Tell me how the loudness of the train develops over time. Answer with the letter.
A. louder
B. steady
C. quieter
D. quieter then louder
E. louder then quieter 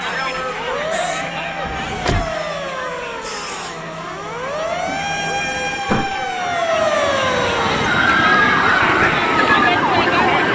A.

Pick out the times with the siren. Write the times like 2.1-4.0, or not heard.
0.2-10.4.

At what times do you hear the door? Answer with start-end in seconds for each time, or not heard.
1.6-2.4, 5.8-6.3.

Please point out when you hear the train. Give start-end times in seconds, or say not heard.
0.0-10.4.